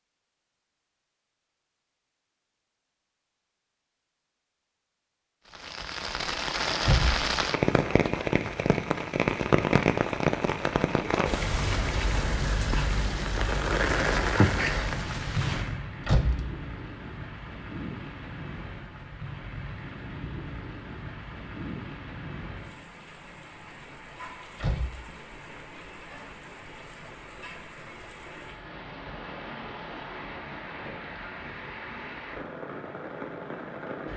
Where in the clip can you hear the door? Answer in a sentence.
The door can be heard from 6.8 to 7.2 s, from 16.1 to 16.6 s and from 24.6 to 25.1 s.